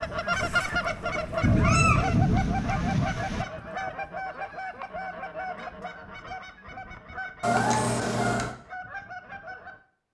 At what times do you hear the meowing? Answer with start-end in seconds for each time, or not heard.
0.3-2.1, 7.4-8.6.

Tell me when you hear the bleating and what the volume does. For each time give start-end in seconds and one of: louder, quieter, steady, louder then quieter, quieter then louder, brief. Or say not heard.
not heard.